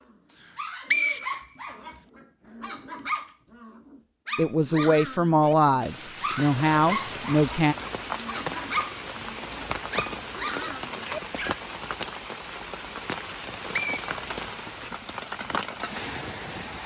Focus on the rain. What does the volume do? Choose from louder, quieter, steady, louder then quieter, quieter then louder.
steady.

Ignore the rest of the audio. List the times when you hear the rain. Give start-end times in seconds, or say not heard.
5.8-16.8.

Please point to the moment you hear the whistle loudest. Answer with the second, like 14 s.
1 s.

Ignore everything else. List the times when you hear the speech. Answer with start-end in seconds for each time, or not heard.
4.3-7.8.